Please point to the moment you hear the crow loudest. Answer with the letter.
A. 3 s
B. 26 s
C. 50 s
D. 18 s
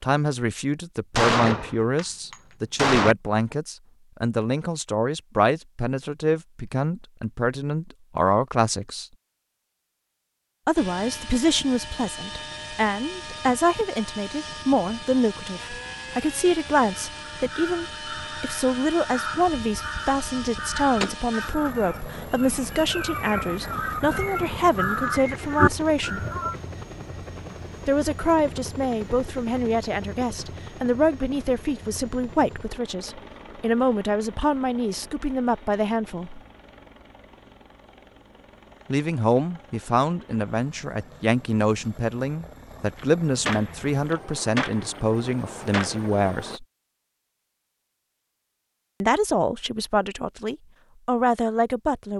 B.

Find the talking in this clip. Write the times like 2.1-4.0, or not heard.
0.0-9.1, 10.7-26.2, 27.9-36.4, 38.9-46.6, 49.0-52.1.